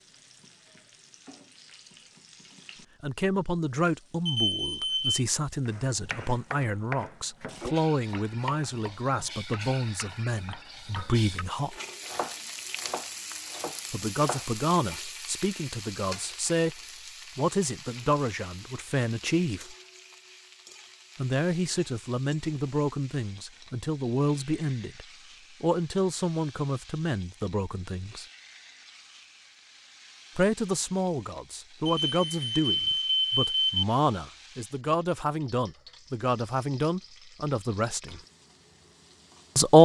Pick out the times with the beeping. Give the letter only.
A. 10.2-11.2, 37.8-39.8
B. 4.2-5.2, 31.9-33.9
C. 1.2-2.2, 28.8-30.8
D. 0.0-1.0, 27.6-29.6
B.